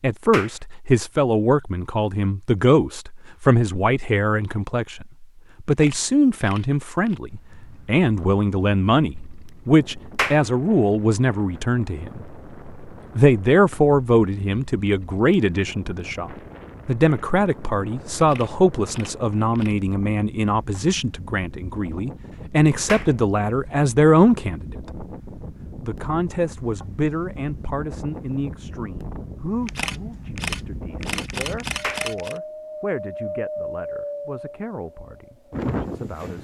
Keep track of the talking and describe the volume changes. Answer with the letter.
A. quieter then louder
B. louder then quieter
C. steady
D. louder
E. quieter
E.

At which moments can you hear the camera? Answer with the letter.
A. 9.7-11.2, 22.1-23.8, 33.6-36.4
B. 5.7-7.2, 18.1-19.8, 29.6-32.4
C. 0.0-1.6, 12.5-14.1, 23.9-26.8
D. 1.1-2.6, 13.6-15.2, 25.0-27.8
B.